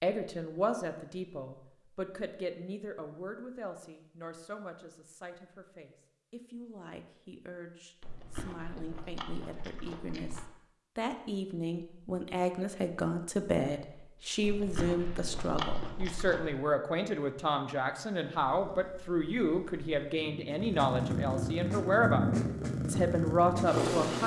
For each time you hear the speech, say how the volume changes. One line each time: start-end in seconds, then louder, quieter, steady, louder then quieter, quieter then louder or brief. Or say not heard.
0.0-24.2 quieter then louder.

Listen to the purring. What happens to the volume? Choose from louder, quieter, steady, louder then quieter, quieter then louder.
louder.